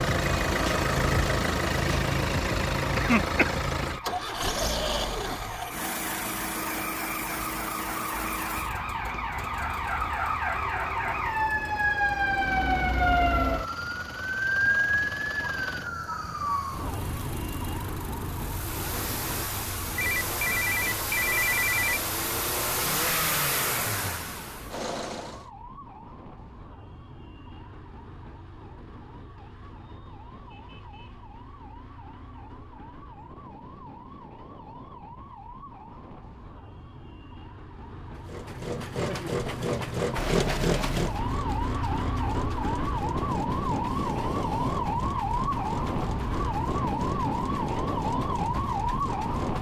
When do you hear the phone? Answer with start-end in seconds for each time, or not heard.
19.9-22.0, 40.1-41.2.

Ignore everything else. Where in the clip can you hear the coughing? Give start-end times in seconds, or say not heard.
3.0-4.0.